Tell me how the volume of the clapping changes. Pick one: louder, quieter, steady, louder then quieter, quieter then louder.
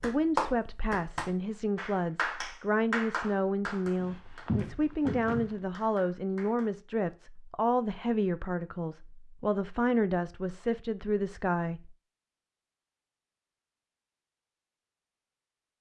quieter.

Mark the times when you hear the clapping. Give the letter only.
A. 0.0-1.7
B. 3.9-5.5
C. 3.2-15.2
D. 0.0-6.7
D.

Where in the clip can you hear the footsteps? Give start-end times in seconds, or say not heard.
3.9-5.5.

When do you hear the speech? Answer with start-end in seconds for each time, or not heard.
0.0-11.9.